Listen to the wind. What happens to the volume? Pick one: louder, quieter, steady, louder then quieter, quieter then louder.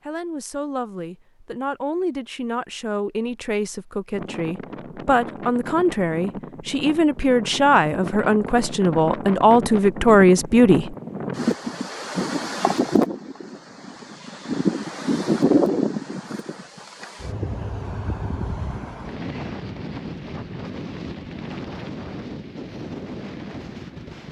louder then quieter.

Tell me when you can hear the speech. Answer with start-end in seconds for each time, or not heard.
0.1-10.9.